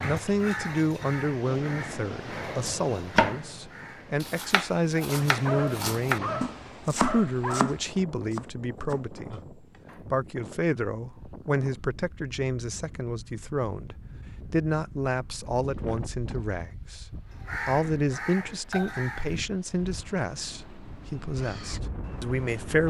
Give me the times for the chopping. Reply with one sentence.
The chopping can be heard from 2.6 to 3.5 s and from 4.2 to 10.0 s.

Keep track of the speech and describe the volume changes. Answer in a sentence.
The volume of the speech stays about the same.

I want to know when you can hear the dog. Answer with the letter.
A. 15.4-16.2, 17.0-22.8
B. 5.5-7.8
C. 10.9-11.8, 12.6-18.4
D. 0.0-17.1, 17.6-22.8
B.